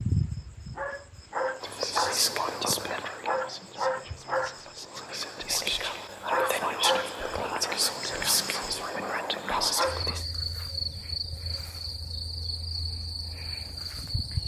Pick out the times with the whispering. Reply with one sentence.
You can hear the whispering from 1.6 to 10.2 s.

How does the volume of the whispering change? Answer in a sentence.
The volume of the whispering goes down, then up.